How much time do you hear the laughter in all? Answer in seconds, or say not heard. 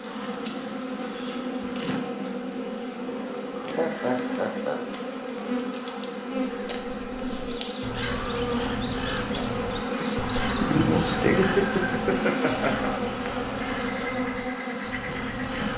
3 s.